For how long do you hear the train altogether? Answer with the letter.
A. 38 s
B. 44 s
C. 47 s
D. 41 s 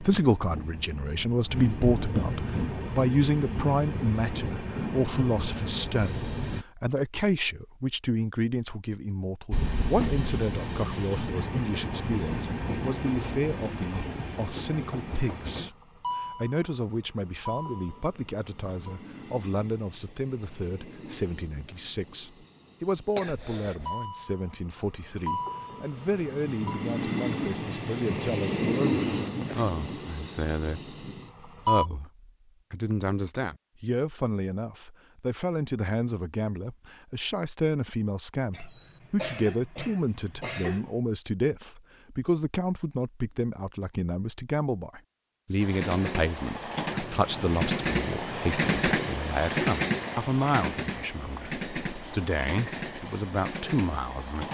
A.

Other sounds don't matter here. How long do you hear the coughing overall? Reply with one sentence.
You can hear the coughing for 3 seconds altogether.